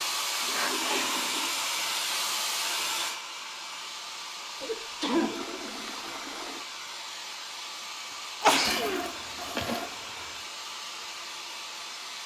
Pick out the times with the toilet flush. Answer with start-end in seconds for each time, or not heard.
0.4-2.2, 4.6-6.7, 8.7-10.4.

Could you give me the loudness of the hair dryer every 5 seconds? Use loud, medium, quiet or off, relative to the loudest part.
loud, medium, medium.